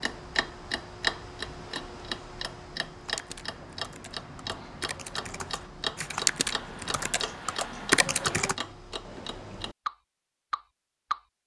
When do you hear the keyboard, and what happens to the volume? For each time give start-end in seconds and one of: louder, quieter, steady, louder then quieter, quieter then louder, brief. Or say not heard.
3.0-8.6 louder.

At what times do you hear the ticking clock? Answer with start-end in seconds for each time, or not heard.
0.0-11.4.